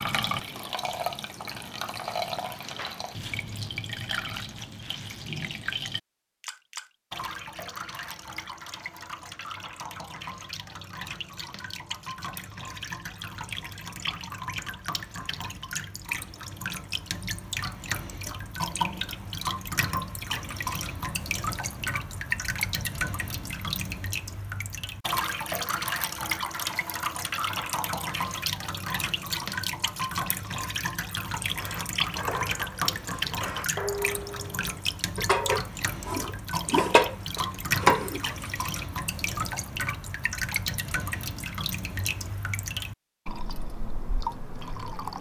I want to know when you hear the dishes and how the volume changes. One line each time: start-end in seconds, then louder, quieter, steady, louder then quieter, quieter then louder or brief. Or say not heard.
31.5-38.2 louder.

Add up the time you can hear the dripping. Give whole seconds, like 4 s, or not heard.
45 s.